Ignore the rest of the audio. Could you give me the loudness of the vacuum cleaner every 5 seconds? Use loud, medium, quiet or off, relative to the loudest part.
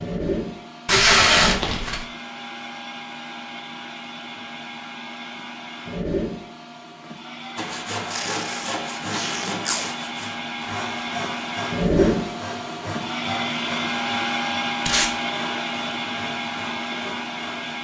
medium, medium, loud, loud.